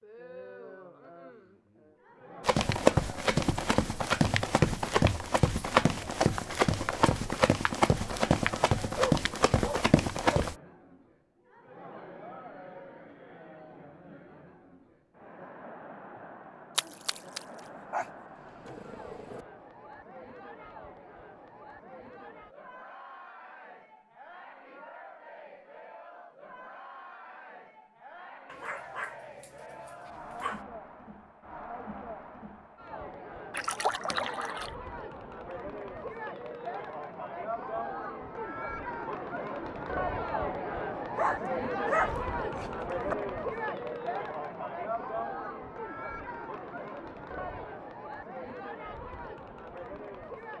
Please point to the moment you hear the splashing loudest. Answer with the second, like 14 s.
34 s.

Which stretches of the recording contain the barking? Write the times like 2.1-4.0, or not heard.
8.9-10.5, 17.9-19.4, 28.4-30.6, 41.1-43.1.